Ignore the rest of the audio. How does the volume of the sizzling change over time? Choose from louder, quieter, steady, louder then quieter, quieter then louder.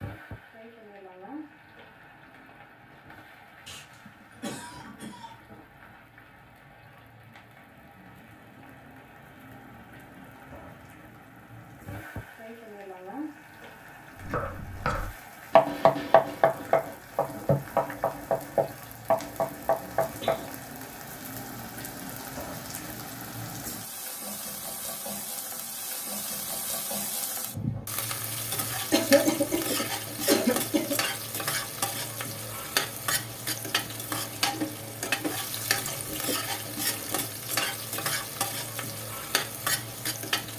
louder.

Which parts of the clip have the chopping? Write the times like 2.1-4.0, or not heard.
14.2-20.6.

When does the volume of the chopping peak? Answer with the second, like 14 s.
16 s.